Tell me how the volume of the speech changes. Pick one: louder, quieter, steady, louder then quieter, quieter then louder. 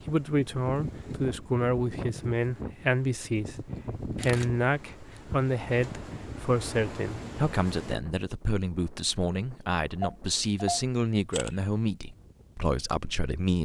steady.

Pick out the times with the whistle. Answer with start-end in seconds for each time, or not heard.
not heard.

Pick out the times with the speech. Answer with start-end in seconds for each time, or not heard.
0.1-13.6.